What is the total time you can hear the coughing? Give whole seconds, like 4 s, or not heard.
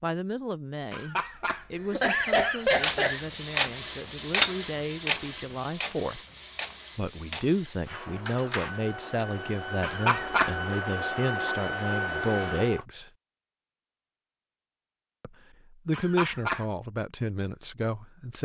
4 s.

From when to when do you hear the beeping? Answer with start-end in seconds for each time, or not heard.
not heard.